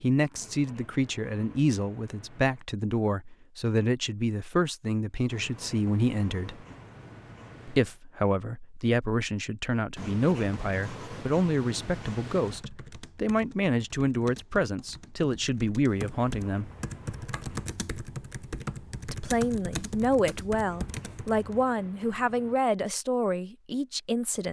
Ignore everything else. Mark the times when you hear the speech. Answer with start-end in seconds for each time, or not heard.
0.0-6.7, 7.7-16.7, 19.1-24.4.